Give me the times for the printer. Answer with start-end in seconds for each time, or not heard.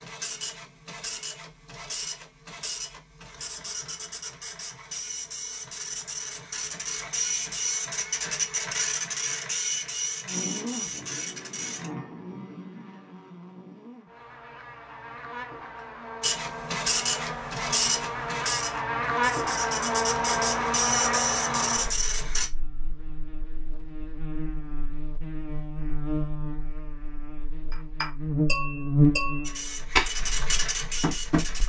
0.0-11.9, 16.2-22.5, 29.4-31.6.